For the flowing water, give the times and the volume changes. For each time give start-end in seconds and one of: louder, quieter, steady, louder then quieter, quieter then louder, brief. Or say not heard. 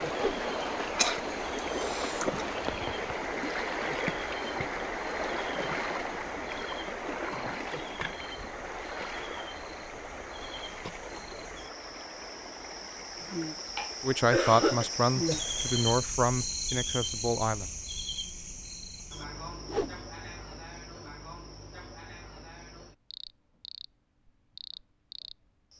0.0-16.0 quieter.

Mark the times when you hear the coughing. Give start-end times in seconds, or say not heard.
0.9-2.4, 13.2-14.9.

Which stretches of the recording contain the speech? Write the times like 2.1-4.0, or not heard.
14.0-17.7.